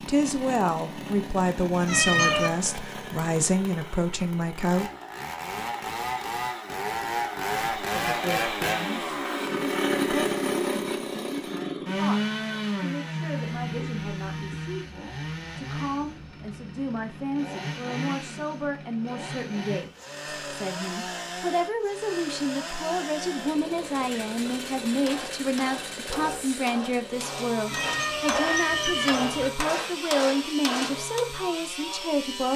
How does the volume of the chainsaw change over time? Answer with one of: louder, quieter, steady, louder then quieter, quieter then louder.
louder then quieter.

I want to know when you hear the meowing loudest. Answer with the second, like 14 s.
2 s.